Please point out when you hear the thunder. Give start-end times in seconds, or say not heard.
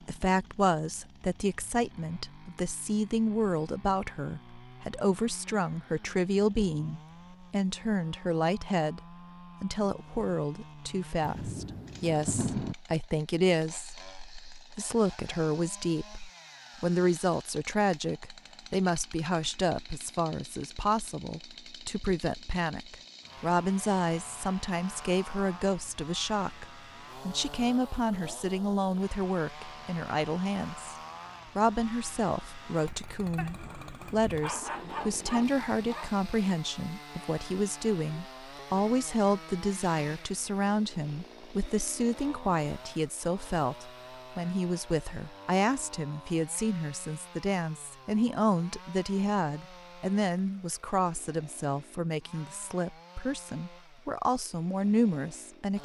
11.2-12.8.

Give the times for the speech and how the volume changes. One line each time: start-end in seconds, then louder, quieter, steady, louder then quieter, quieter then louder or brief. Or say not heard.
0.1-30.9 steady
31.6-55.8 steady.